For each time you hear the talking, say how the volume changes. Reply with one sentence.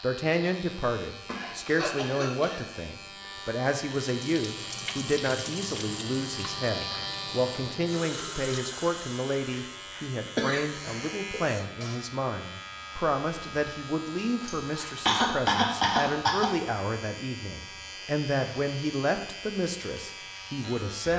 You can hear the talking from 0.0 to 21.1 s, at a steady volume.